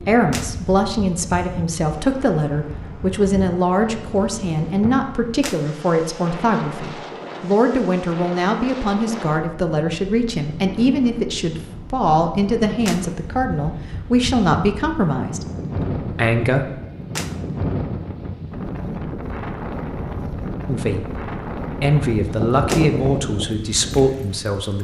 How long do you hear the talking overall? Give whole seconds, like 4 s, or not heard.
21 s.